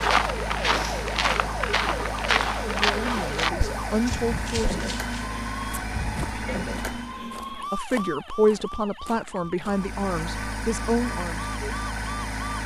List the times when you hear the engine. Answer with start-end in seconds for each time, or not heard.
0.0-7.3, 9.6-12.6.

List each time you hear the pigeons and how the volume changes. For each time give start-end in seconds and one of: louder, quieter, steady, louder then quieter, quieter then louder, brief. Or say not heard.
not heard.